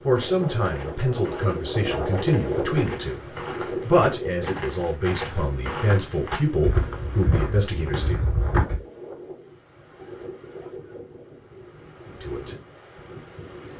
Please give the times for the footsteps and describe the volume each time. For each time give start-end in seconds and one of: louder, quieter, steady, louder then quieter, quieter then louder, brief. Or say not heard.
0.1-8.8 louder.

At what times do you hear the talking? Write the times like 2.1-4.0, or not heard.
0.1-8.2, 12.1-12.6.